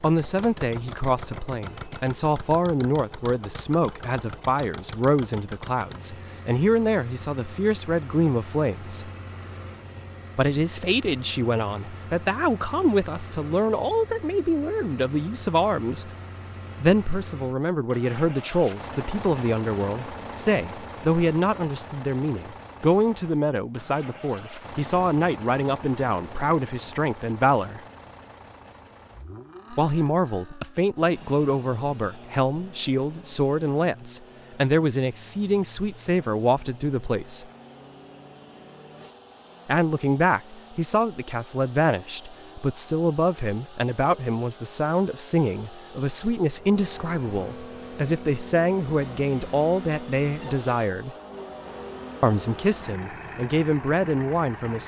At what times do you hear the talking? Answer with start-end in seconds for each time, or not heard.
0.0-9.1, 10.3-16.1, 16.8-27.8, 29.7-37.5, 39.6-51.1, 52.2-54.8.